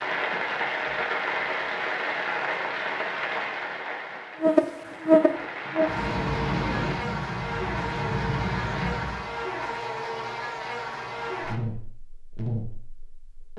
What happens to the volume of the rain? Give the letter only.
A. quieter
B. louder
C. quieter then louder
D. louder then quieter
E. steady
C.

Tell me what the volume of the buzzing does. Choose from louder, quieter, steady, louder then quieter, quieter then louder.
quieter.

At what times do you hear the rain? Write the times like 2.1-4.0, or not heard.
0.0-9.3.